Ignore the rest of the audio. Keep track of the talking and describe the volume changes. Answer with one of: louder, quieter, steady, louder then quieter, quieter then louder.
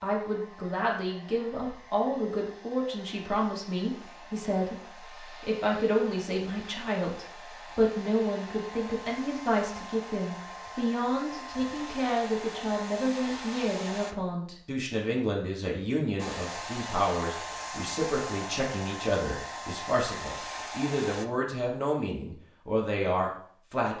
steady.